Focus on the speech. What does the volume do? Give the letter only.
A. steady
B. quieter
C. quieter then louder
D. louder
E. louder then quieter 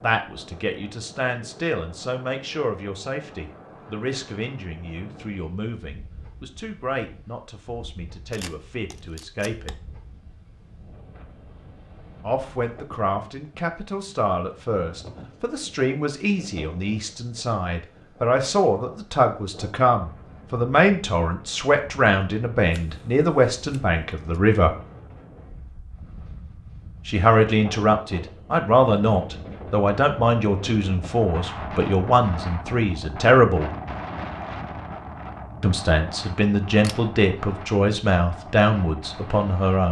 D.